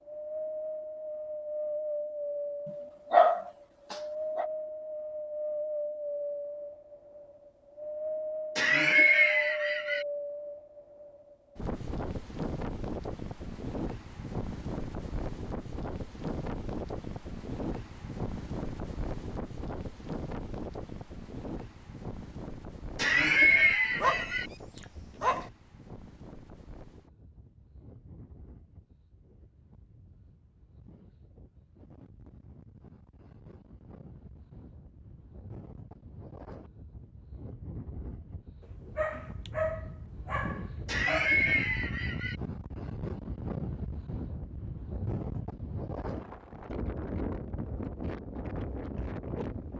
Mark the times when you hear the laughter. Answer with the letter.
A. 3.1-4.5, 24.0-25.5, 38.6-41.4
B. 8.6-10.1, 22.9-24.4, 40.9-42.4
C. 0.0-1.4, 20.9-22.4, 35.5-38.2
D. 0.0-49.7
B.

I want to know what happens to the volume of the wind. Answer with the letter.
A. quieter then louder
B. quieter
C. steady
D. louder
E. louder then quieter
A.